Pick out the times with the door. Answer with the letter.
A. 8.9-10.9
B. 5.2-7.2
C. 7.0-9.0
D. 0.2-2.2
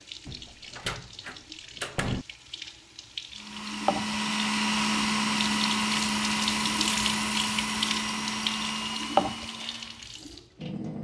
D.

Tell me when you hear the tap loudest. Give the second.
9 s.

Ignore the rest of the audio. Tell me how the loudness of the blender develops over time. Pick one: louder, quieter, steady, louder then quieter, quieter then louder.
quieter.